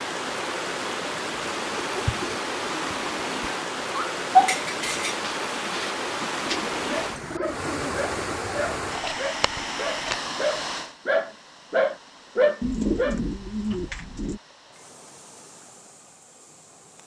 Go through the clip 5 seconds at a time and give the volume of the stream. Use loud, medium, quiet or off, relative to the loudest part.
loud, loud, medium, quiet.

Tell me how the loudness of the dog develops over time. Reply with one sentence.
The volume of the dog goes down, then up.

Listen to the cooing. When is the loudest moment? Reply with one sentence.
The volume of the cooing peaks at 13 seconds.